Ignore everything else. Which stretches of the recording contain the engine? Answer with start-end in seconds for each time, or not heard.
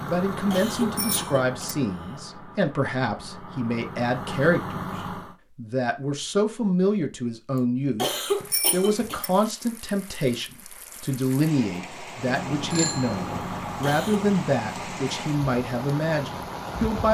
0.0-5.3, 12.3-16.8.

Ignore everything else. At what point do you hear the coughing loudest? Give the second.
8 s.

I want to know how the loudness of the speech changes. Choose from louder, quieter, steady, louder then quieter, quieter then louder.
steady.